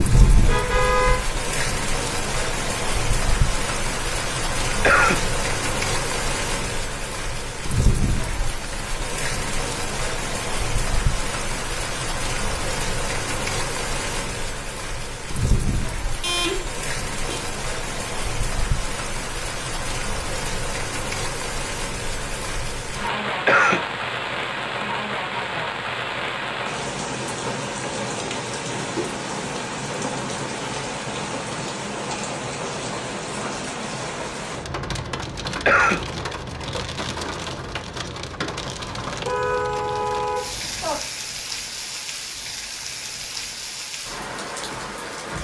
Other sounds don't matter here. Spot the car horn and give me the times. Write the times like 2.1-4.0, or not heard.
0.1-1.2, 16.2-17.4, 38.6-41.0.